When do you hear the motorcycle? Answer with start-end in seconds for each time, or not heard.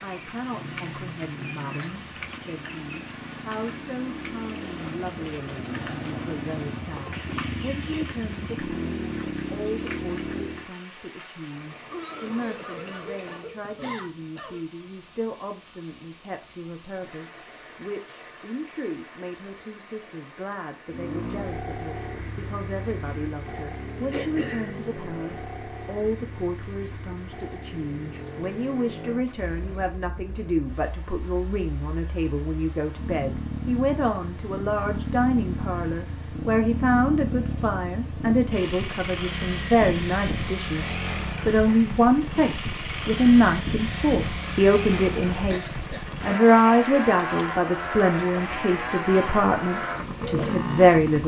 0.0-10.7, 20.9-51.2.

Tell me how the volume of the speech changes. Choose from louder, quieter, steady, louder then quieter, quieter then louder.
louder.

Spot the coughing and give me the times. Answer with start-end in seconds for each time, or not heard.
11.9-14.7, 24.1-24.8, 45.5-46.2.